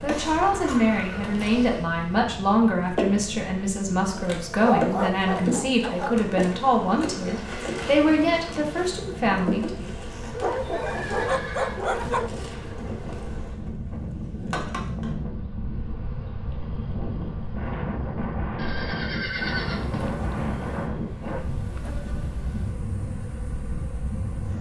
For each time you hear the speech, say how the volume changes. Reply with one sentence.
You can hear the speech from 0.0 to 9.9 s, at a steady volume.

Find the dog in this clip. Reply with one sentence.
The dog can be heard from 4.6 to 6.2 s, from 10.3 to 12.3 s and from 19.9 to 21.9 s.